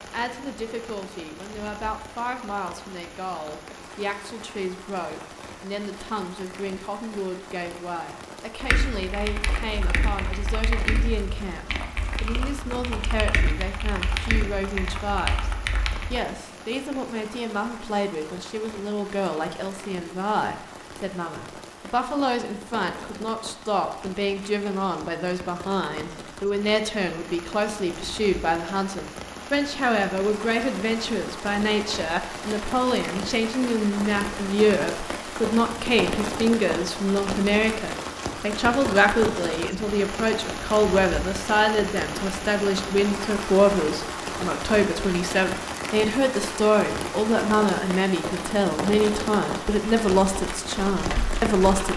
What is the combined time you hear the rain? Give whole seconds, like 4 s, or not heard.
52 s.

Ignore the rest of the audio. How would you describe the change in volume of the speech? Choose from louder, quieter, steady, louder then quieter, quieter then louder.
louder.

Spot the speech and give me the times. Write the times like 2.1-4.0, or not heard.
0.0-15.5, 16.1-51.9.